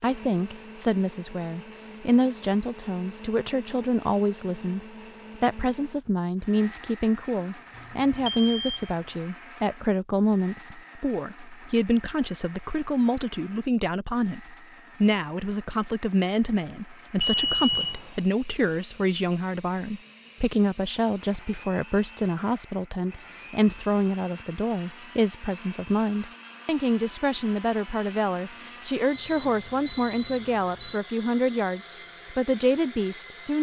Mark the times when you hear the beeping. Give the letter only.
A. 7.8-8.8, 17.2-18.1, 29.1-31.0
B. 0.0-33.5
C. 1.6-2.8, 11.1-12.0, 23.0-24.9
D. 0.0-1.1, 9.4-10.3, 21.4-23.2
A.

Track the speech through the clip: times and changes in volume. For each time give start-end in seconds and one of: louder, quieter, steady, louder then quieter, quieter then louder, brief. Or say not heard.
0.0-33.5 steady.